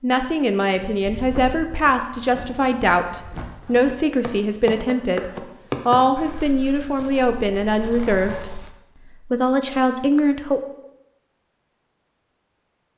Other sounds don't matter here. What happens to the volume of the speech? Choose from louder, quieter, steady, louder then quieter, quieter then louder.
steady.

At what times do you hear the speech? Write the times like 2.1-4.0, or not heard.
0.0-10.6.